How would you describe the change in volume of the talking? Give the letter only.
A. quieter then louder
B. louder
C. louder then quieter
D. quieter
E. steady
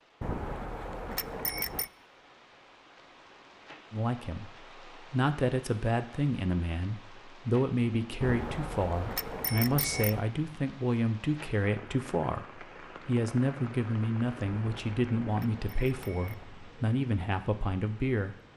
E.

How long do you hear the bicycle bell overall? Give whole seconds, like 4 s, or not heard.
6 s.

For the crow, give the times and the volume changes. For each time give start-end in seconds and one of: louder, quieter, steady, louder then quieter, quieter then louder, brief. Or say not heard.
not heard.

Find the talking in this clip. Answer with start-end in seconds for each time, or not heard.
3.9-18.4.